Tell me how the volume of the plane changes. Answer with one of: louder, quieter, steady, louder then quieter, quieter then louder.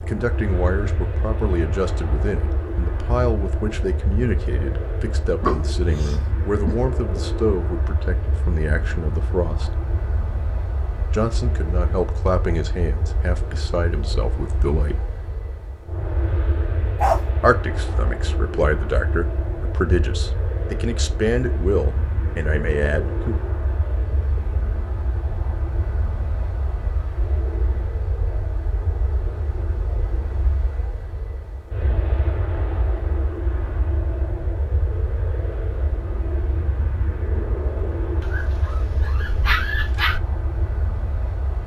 steady.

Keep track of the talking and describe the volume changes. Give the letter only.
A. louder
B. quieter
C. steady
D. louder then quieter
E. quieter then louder
C.